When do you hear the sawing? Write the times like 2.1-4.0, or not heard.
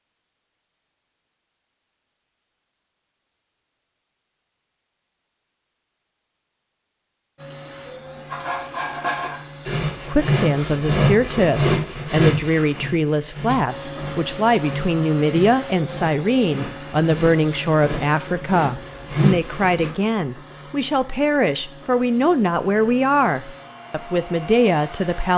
8.3-19.9.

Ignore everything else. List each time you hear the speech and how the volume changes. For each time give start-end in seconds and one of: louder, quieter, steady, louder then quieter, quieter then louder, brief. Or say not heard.
10.1-25.3 steady.